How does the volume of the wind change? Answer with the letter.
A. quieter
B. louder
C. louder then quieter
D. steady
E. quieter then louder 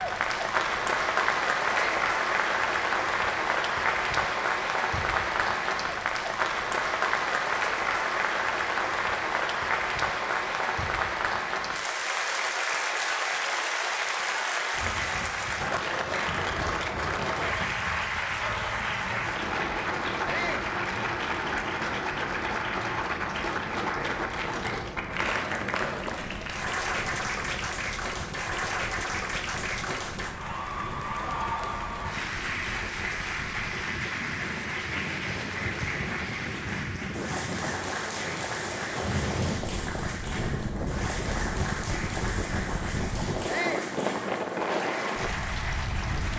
B.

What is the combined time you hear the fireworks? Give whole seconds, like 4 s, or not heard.
not heard.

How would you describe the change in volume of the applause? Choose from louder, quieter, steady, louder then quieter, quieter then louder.
quieter.